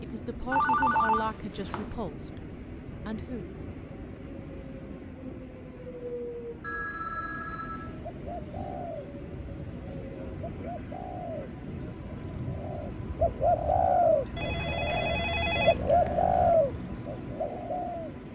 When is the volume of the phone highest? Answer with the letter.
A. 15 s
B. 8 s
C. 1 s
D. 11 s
C.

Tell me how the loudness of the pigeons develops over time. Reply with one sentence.
The volume of the pigeons goes up.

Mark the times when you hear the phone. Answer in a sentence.
You can hear the phone from 0.5 to 1.9 s, from 6.6 to 8.0 s and from 14.3 to 16.6 s.